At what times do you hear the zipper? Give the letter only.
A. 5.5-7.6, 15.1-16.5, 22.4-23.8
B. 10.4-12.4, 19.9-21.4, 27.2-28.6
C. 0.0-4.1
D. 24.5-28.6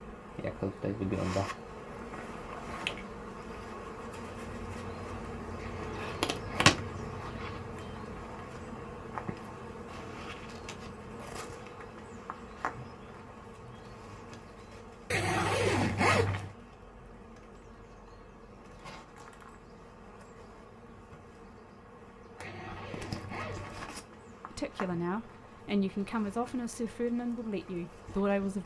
A.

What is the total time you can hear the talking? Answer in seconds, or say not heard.
4 s.